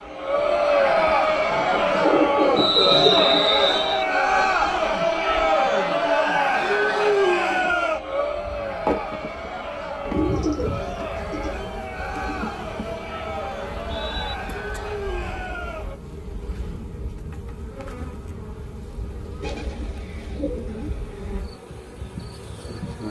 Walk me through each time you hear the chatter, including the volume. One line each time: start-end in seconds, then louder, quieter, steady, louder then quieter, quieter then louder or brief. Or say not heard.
0.0-15.9 quieter.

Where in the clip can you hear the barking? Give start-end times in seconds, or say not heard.
not heard.